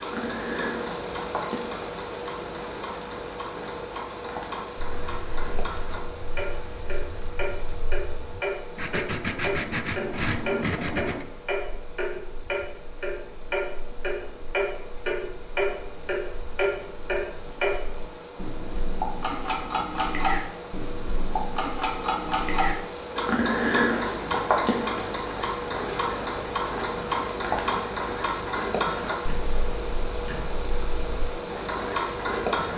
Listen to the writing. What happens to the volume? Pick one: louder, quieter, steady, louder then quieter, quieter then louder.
louder.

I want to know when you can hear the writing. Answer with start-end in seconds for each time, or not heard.
5.0-11.2.